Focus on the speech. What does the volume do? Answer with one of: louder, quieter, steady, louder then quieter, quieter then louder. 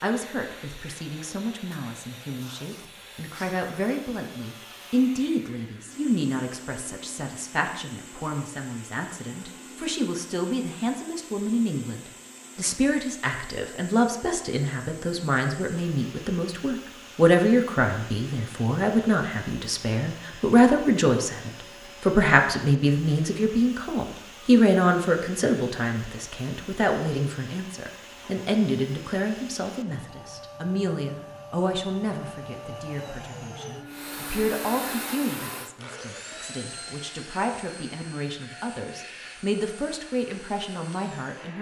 louder then quieter.